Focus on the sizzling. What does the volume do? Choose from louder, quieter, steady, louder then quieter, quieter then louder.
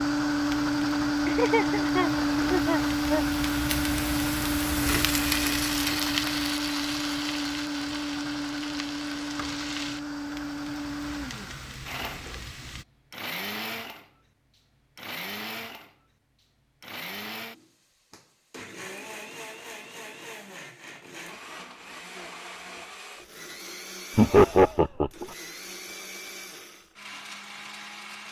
louder then quieter.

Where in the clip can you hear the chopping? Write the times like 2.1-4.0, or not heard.
not heard.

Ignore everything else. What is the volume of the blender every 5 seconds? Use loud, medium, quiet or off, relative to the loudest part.
loud, medium, medium, quiet, quiet, quiet.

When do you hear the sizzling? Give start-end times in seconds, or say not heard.
0.0-12.8.